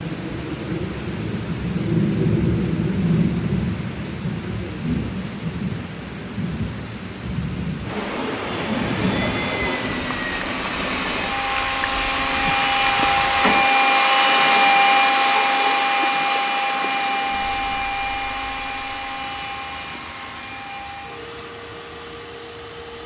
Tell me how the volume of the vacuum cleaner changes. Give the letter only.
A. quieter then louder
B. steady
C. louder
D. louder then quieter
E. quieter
D.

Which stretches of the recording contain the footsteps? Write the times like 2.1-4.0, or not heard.
not heard.